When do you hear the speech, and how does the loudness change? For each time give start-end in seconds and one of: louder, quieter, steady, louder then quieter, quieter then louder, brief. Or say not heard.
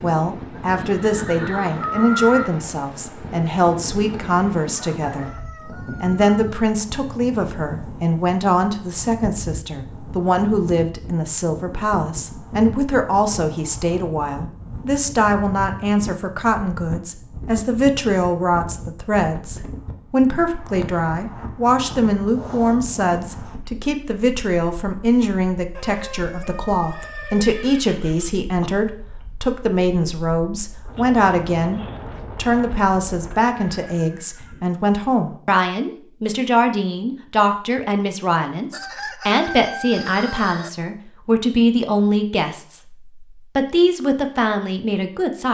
0.0-45.5 steady.